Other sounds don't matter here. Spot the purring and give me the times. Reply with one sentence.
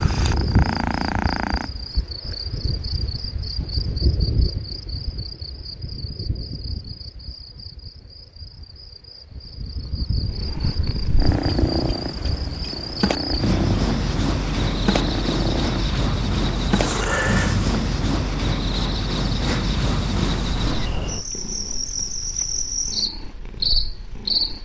The purring can be heard from 0.0 to 1.8 s, from 10.2 to 17.9 s and from 19.4 to 24.5 s.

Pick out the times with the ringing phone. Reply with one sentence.
The ringing phone can't be heard in this clip.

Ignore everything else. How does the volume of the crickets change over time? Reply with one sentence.
The volume of the crickets goes down, then up.